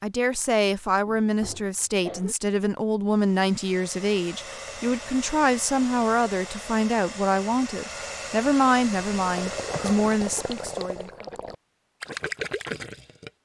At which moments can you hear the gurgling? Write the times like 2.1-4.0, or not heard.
9.1-13.3.